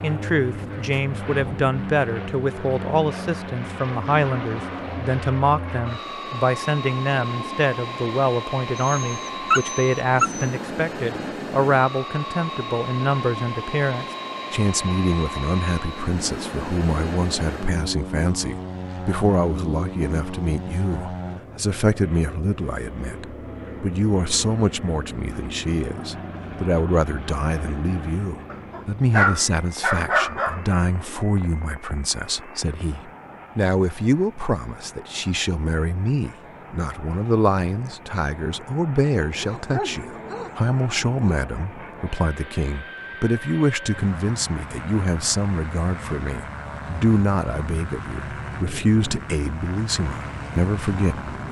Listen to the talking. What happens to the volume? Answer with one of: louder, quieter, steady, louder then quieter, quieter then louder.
steady.